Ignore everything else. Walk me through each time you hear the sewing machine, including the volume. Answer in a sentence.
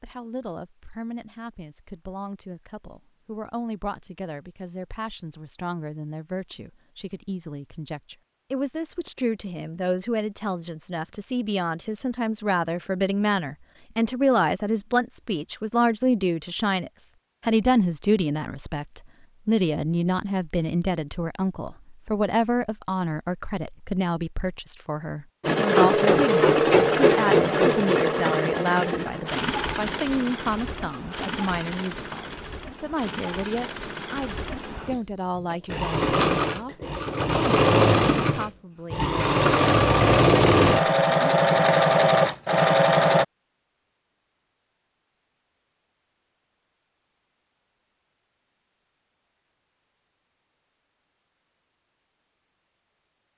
You can hear the sewing machine from 25.4 to 43.2 s, getting quieter then louder.